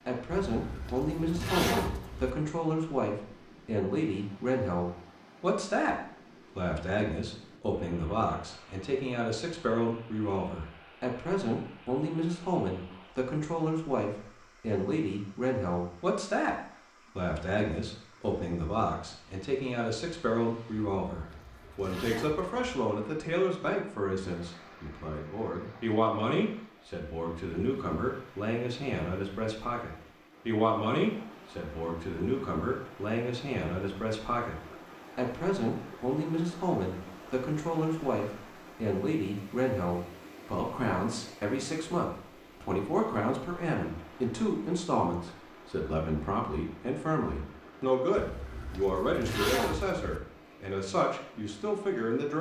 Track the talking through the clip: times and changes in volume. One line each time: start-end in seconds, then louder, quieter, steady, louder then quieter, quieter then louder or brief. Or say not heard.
0.1-16.6 steady
17.1-52.3 steady.